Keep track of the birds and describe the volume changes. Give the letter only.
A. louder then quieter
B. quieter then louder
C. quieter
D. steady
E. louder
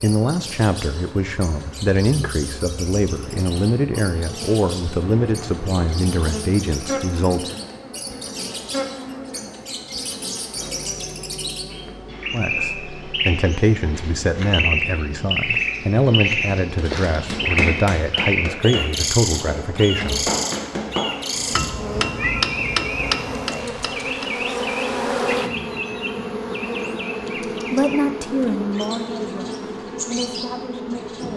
A.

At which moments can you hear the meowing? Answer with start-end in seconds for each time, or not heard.
21.4-22.8.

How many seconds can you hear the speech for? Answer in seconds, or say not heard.
19 s.